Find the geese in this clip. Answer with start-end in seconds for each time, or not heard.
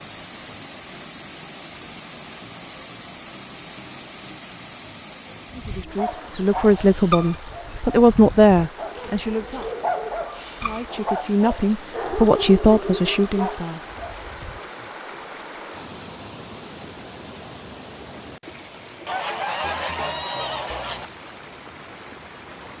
19.1-21.1.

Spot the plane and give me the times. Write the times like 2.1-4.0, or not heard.
not heard.